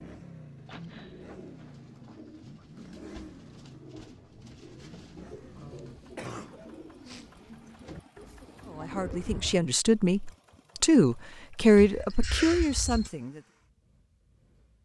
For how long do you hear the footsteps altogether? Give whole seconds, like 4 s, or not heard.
not heard.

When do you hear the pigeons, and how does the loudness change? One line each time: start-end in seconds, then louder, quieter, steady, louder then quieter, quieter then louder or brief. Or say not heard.
0.6-9.6 louder.